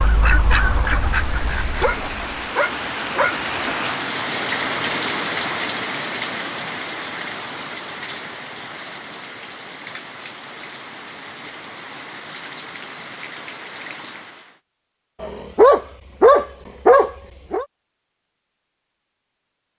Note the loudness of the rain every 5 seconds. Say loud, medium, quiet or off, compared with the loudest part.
loud, loud, medium, off.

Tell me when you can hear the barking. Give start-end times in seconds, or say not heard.
1.6-3.4, 15.2-17.6.